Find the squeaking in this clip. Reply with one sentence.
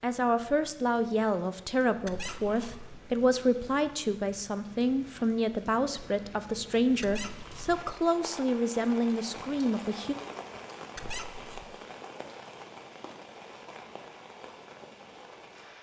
The squeaking can be heard from 2.0 to 3.0 s, from 7.0 to 7.8 s and from 10.9 to 11.7 s.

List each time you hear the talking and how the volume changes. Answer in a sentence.
You can hear the talking from 0.0 to 10.2 s, at a steady volume.